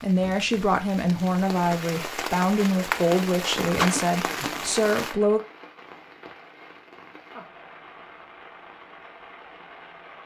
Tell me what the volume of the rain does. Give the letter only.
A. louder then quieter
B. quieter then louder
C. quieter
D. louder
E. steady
A.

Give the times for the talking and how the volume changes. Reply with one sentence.
The talking can be heard from 0.0 to 5.4 s, at a steady volume.